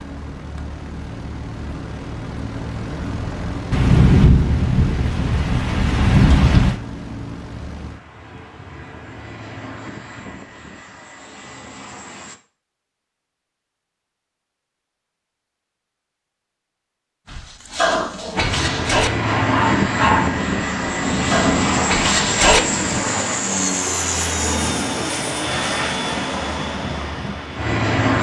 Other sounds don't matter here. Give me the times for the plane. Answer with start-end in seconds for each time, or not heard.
0.0-12.4, 18.4-28.1.